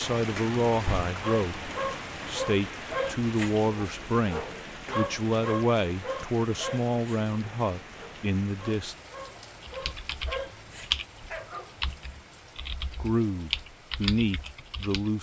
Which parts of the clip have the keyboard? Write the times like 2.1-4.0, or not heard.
9.7-15.1.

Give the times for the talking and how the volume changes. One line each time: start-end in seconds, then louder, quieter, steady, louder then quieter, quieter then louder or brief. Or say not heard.
0.0-8.9 steady
12.8-15.1 brief.